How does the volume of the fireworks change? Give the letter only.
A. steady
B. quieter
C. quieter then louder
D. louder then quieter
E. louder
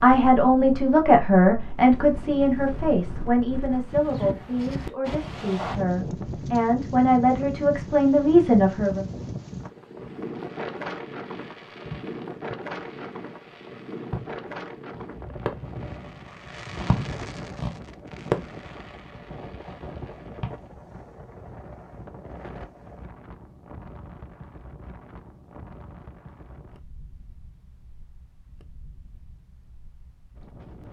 E.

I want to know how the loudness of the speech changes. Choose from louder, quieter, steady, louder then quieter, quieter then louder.
quieter then louder.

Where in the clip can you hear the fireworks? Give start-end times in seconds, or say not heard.
9.9-20.6.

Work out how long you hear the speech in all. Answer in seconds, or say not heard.
9 s.